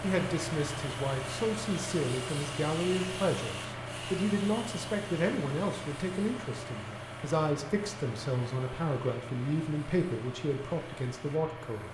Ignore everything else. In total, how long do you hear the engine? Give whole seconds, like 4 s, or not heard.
12 s.